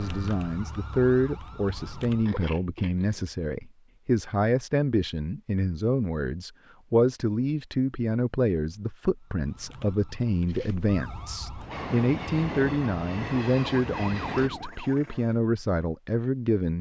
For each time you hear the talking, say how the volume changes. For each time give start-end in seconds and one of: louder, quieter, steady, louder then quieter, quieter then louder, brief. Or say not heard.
0.0-16.7 steady.